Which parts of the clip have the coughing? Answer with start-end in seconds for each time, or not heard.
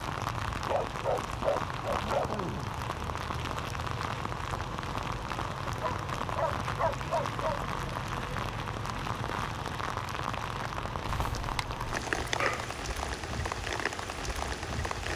not heard.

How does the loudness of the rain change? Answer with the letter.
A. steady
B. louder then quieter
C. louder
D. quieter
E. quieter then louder
A.